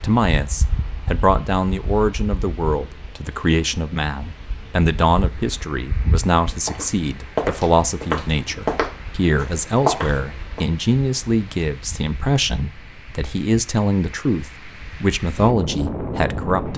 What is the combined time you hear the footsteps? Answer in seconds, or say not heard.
4 s.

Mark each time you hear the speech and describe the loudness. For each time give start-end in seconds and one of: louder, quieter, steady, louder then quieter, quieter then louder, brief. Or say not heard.
0.0-16.7 steady.